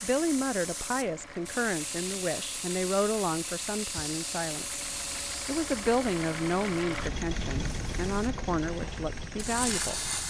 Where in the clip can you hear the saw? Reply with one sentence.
The saw can't be heard in this clip.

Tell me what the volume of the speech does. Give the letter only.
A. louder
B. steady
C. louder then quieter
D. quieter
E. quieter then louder
B.